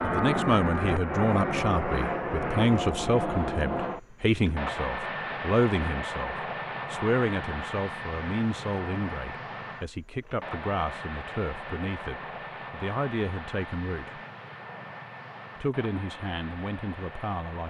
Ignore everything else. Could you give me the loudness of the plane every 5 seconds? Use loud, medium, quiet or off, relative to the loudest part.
loud, medium, medium, quiet.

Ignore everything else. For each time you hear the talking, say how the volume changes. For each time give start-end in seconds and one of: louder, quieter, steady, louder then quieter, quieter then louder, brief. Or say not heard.
0.0-14.2 quieter
15.6-17.6 brief.